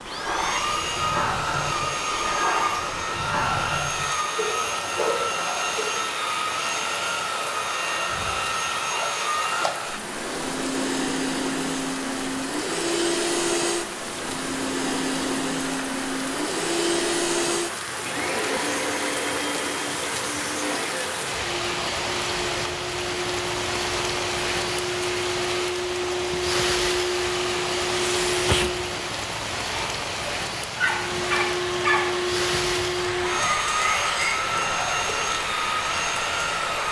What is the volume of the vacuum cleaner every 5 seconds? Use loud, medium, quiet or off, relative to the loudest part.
loud, loud, loud, loud, medium, loud, loud, loud.